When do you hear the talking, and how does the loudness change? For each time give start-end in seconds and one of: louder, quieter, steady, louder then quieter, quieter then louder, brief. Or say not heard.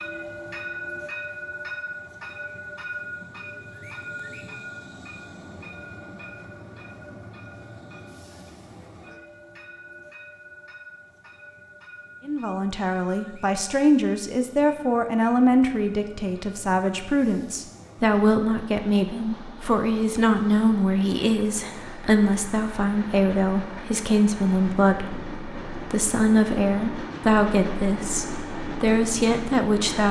12.2-30.0 steady.